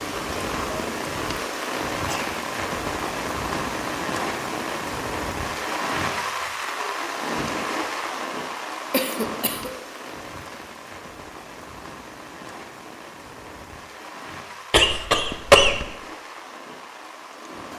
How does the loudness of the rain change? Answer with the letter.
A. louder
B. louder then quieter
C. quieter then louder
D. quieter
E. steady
D.